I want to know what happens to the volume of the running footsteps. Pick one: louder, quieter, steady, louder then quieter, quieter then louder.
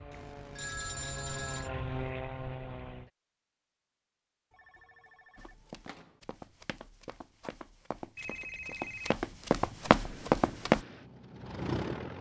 louder.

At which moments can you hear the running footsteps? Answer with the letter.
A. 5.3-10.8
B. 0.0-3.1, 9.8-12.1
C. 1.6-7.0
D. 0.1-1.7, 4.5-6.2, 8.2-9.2
A.